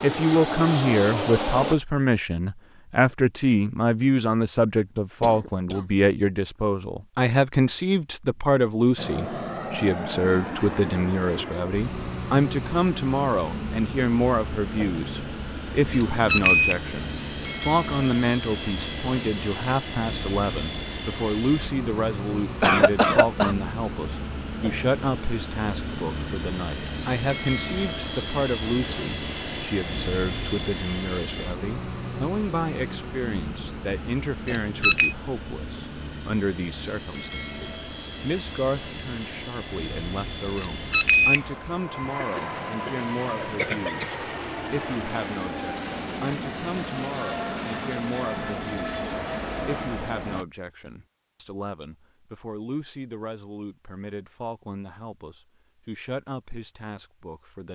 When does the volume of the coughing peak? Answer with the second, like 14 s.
23 s.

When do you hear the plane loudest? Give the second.
1 s.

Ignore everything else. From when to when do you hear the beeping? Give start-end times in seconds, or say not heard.
15.9-16.8, 34.5-35.1, 40.5-41.7.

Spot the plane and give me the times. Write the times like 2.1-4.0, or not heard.
0.0-1.8, 8.9-50.5.